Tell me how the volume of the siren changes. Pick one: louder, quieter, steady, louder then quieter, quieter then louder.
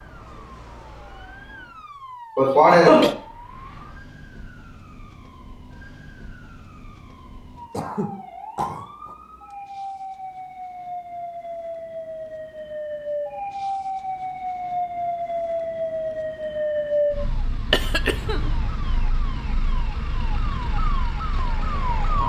louder then quieter.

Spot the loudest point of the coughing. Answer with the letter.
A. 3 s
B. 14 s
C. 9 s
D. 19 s
A.